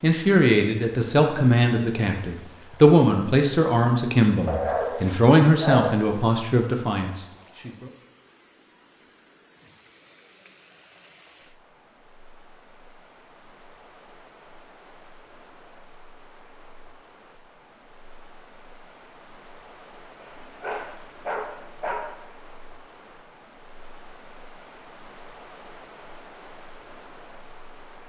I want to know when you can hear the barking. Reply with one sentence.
You can hear the barking from 4.5 to 6.0 s and from 20.2 to 22.1 s.